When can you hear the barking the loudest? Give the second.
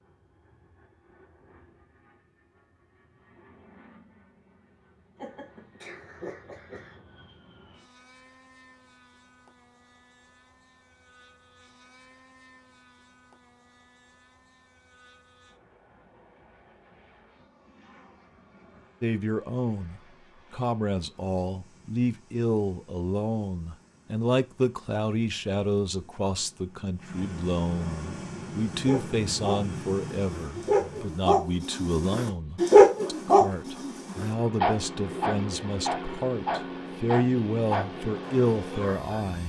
33 s.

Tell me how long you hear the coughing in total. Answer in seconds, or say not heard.
2 s.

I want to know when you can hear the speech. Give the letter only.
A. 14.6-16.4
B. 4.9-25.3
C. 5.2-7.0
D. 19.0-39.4
D.